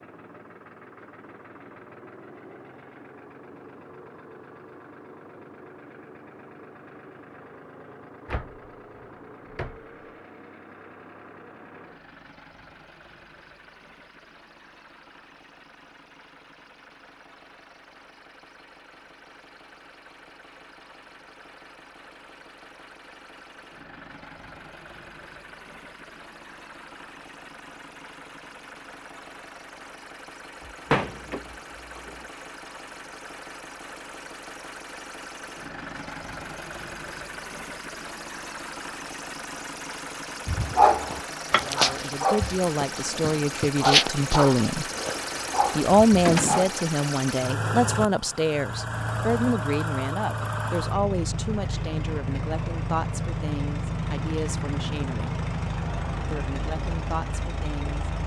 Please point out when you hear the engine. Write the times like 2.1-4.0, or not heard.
0.0-58.2.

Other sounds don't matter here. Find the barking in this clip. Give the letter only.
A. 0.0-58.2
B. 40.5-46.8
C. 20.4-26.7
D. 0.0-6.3
B.